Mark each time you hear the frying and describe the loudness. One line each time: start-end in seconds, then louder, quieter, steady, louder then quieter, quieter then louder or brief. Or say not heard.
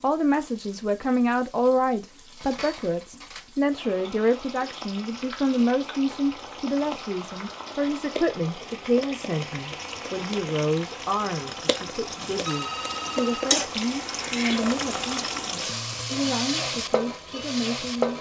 0.0-18.1 louder.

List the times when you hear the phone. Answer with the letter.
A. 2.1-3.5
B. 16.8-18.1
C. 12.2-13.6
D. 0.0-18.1
C.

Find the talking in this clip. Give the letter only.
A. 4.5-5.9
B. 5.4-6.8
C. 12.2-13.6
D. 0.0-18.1
D.